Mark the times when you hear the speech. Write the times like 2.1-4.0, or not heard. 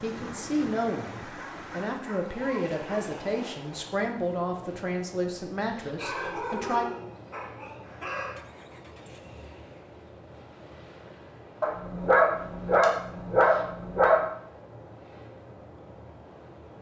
0.0-6.8.